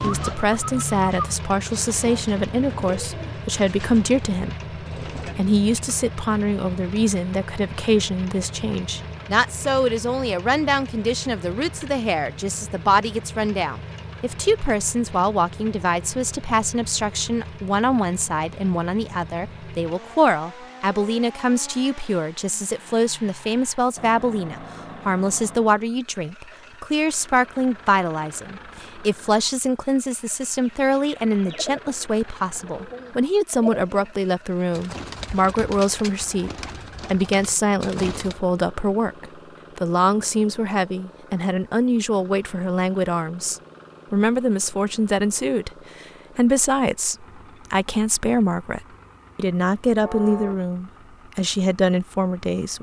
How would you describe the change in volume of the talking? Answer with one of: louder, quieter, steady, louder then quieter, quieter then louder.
steady.